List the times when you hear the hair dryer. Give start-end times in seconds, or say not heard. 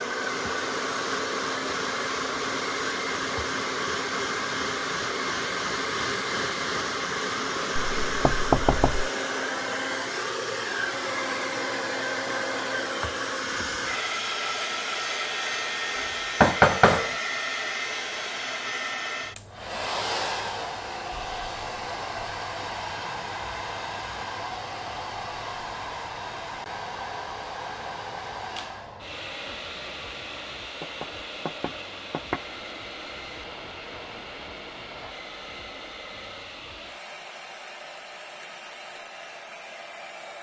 0.0-40.3.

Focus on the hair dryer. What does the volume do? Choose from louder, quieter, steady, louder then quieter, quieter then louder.
quieter.